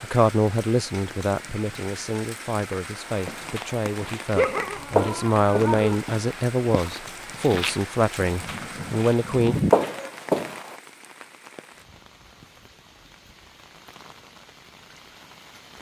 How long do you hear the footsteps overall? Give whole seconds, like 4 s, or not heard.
8 s.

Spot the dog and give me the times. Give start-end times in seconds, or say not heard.
4.3-6.0, 8.4-10.1.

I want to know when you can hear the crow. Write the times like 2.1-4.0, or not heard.
not heard.